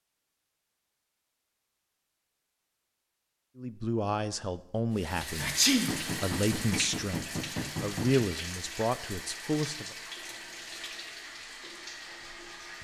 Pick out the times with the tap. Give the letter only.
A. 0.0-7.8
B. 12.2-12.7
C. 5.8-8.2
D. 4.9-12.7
D.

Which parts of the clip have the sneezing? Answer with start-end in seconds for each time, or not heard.
5.4-5.9.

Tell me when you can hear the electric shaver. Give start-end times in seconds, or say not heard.
not heard.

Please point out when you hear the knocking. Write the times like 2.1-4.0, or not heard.
5.8-8.2.